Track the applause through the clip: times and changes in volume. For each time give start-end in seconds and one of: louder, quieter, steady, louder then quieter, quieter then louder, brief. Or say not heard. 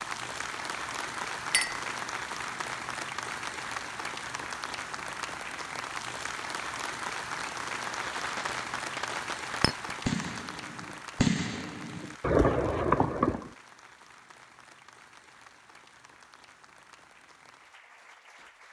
0.0-18.6 quieter.